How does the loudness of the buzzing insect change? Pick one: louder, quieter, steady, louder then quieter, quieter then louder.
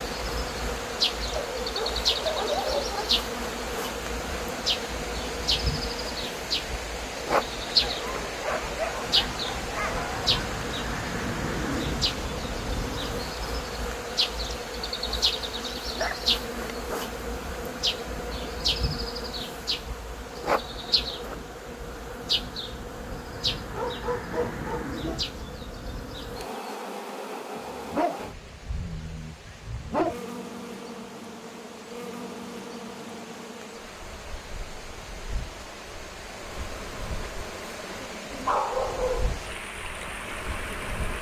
quieter.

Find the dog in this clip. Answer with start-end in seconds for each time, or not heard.
1.4-3.1, 7.8-10.3, 15.9-17.0, 23.7-25.2, 27.6-30.1, 38.5-39.4.